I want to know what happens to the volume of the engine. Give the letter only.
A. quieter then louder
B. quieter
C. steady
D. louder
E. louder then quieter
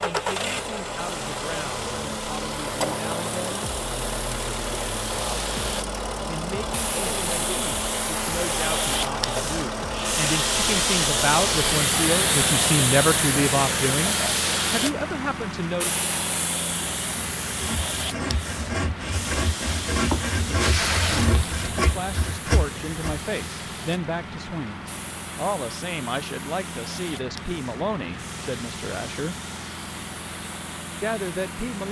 B.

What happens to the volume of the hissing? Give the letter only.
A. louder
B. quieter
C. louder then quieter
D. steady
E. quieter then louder
C.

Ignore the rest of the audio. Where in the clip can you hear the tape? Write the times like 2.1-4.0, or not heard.
20.6-21.6.